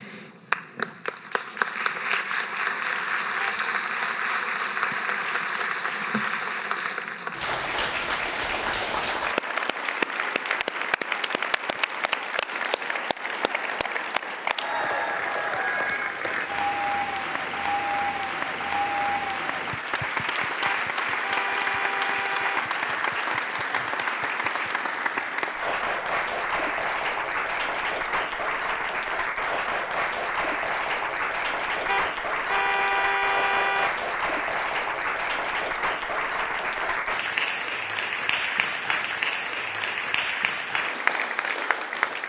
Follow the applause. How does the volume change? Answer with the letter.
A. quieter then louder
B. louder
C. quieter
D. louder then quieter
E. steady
E.